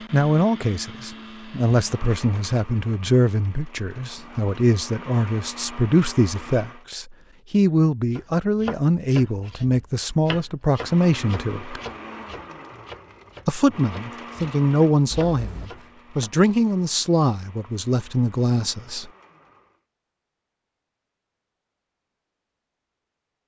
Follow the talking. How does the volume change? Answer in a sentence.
The volume of the talking stays about the same.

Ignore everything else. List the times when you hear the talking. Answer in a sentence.
The talking can be heard from 0.1 to 11.8 s and from 13.4 to 19.1 s.